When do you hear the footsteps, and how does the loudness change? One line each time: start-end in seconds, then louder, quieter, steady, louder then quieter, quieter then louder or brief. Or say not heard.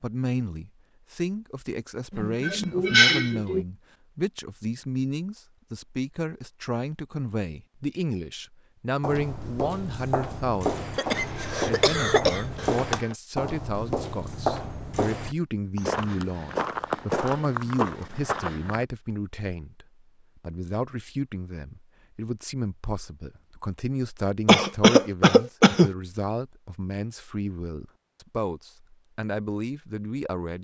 9.0-18.9 steady.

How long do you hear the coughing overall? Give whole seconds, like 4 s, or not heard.
5 s.